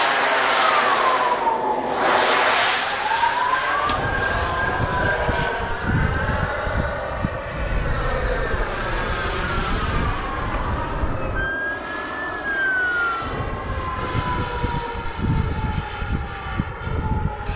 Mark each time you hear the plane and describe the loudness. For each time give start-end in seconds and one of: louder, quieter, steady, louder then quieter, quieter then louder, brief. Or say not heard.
0.0-17.5 quieter.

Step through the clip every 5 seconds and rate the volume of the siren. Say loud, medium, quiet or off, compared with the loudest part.
loud, medium, loud, medium.